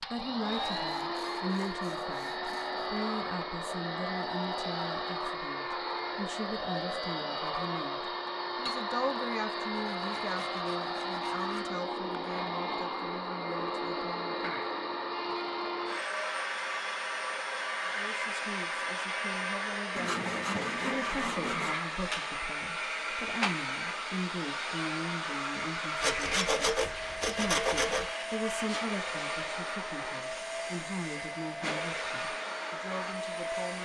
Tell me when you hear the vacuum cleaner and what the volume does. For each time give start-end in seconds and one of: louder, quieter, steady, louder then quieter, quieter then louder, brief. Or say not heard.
0.0-33.7 steady.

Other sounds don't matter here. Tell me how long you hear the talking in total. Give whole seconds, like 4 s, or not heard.
30 s.